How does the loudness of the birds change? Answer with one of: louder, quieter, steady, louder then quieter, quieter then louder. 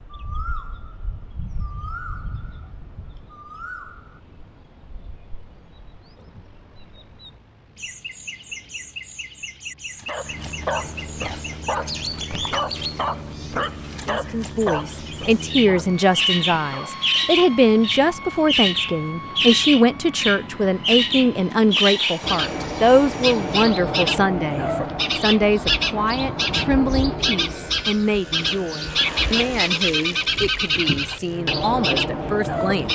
louder.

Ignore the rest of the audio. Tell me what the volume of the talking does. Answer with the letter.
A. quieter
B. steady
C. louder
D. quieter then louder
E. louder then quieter
A.